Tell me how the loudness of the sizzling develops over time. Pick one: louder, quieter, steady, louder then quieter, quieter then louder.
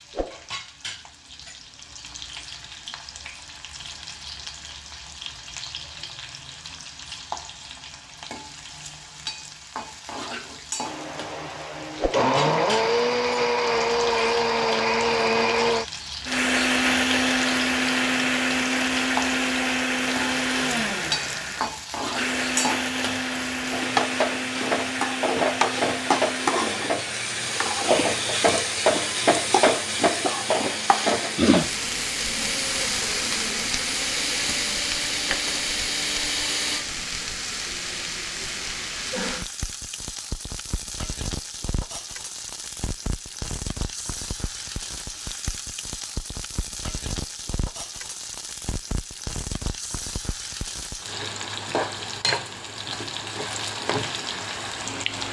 louder then quieter.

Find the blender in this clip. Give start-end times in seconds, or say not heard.
10.8-36.9.